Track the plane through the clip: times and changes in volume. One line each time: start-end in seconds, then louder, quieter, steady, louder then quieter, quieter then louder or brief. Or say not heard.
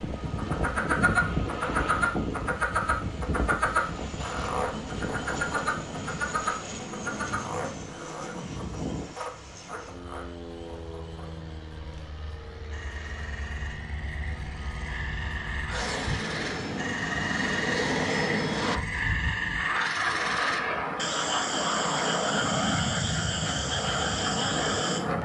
0.0-25.2 quieter then louder.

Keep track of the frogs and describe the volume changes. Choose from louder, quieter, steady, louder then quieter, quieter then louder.
quieter then louder.